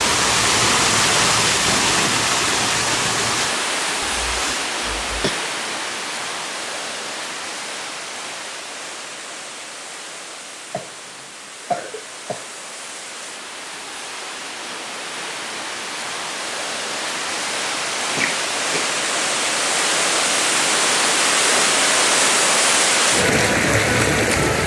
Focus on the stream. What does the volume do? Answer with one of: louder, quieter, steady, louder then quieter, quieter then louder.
quieter then louder.